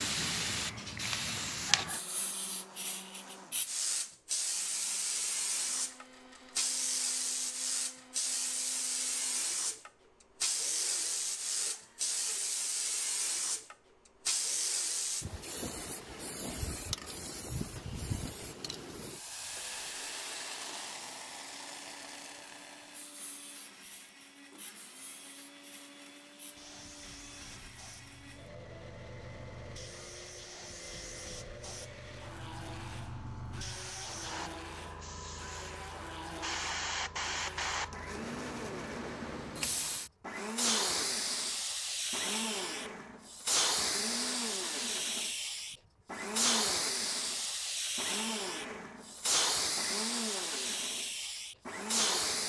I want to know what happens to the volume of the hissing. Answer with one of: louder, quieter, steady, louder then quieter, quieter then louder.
quieter then louder.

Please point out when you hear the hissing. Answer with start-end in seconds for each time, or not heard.
0.0-52.4.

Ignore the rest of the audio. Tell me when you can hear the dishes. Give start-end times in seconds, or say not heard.
not heard.